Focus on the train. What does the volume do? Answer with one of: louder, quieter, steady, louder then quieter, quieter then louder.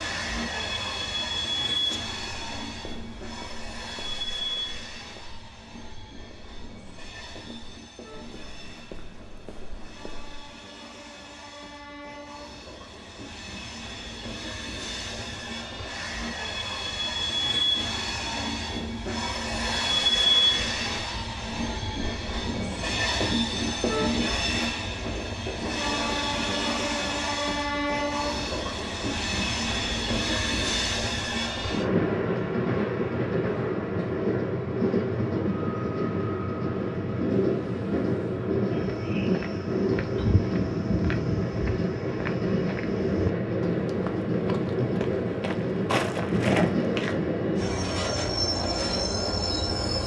louder.